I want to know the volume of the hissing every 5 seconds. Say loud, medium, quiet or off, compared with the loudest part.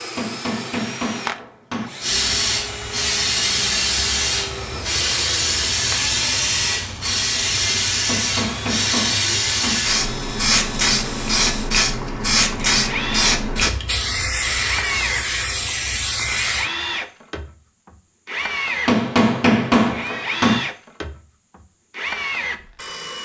loud, loud, loud, loud, off.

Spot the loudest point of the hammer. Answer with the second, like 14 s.
20 s.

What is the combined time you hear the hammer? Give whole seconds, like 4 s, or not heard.
5 s.